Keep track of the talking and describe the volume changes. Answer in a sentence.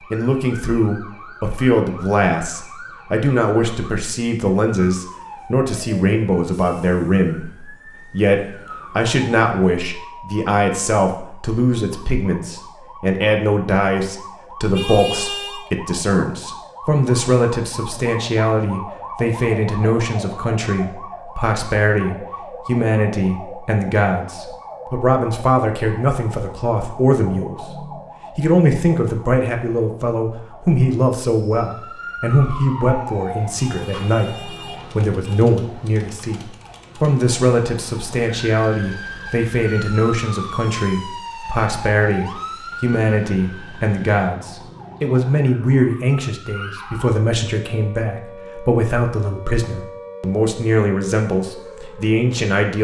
The loudness of the talking stays about the same.